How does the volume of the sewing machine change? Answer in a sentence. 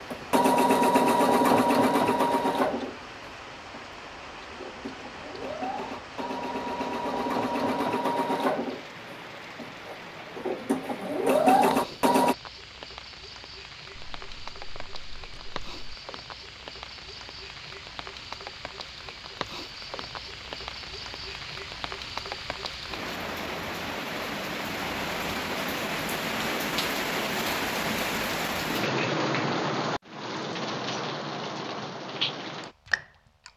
The loudness of the sewing machine goes down, then up.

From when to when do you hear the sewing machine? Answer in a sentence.
The sewing machine can be heard from 0.0 to 12.3 s.